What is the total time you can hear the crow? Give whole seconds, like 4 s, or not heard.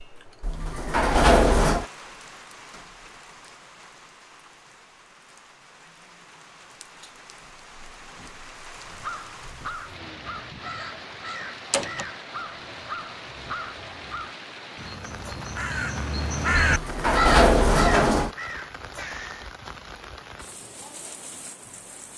11 s.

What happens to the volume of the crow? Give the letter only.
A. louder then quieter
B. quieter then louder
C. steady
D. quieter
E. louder
E.